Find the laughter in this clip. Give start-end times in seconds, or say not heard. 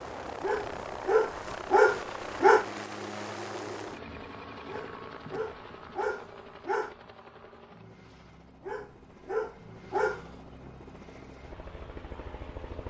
not heard.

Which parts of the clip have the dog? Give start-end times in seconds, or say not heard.
0.4-2.6, 4.7-7.0, 8.7-10.3.